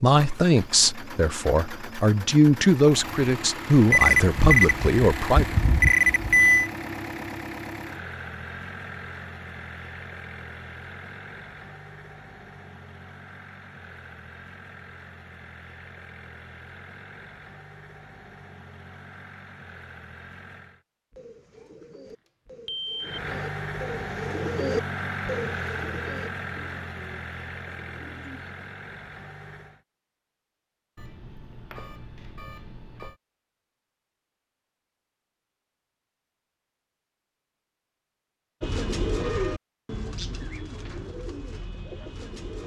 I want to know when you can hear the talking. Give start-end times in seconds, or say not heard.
0.0-5.5.